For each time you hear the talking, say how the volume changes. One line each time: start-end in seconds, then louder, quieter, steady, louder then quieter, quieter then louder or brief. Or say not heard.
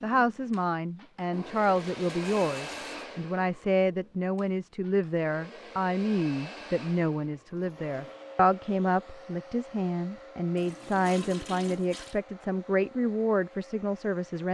0.0-14.4 steady.